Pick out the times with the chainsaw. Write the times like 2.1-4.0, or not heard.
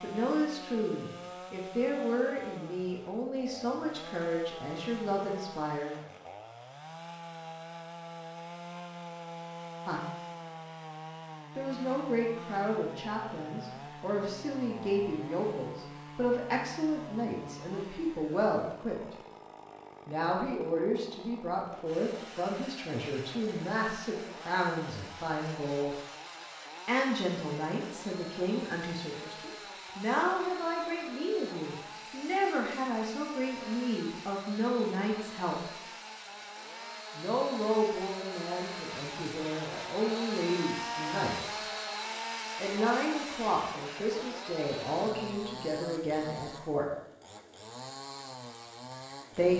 0.0-49.5.